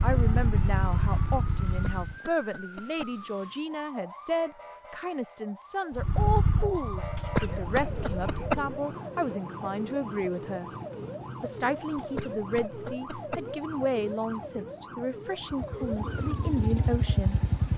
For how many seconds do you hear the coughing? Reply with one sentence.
You can hear the coughing for 5 seconds altogether.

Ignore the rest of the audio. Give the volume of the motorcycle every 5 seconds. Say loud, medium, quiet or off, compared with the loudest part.
loud, loud, off, loud.